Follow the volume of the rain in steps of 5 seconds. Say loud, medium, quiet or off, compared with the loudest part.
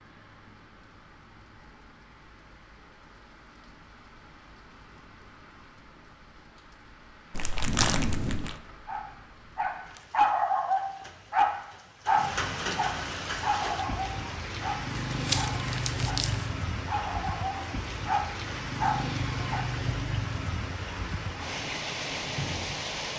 quiet, quiet, loud, loud, loud.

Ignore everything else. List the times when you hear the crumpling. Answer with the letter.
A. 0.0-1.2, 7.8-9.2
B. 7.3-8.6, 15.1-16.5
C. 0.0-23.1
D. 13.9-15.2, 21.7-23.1
B.